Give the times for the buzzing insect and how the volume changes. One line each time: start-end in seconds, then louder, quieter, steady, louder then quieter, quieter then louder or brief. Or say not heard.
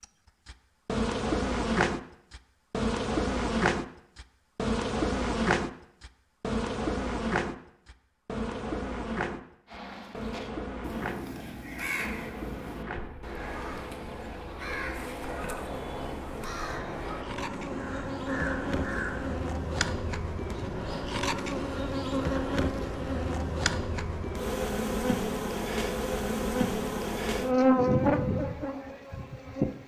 0.0-29.8 quieter then louder.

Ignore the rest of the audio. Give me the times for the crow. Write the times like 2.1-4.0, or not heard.
9.7-19.4.